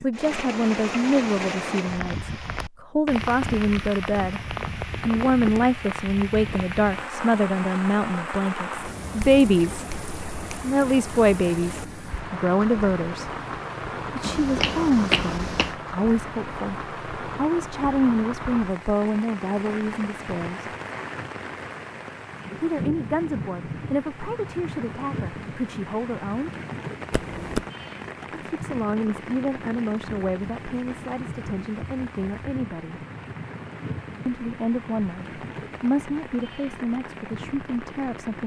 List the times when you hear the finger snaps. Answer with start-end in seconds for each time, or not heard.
9.2-10.6, 14.2-15.8, 27.1-27.6.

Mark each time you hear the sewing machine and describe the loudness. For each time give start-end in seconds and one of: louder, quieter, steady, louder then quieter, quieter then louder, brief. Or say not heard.
not heard.